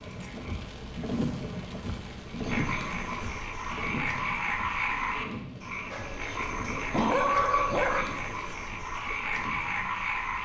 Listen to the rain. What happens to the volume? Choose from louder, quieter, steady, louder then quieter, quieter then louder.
quieter.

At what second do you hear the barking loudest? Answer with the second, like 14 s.
7 s.